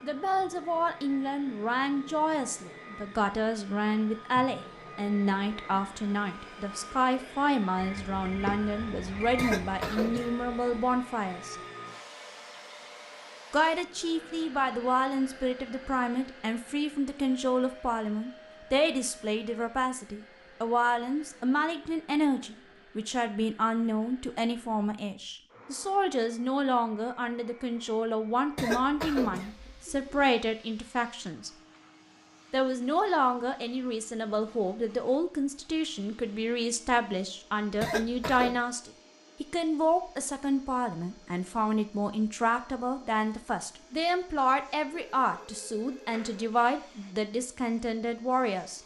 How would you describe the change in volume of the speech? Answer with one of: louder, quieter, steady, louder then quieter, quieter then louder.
steady.